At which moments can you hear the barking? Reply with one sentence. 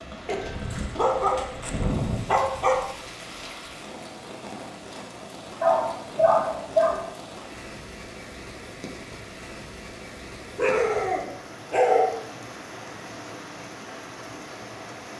You can hear the barking from 0.2 to 2.9 s, from 5.6 to 7.1 s and from 10.6 to 12.2 s.